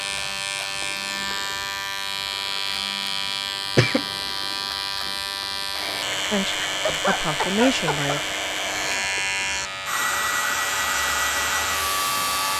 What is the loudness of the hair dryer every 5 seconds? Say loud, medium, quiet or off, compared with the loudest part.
off, medium, loud.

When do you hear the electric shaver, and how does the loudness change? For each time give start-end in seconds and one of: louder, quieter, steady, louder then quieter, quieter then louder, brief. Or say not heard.
0.0-12.5 steady.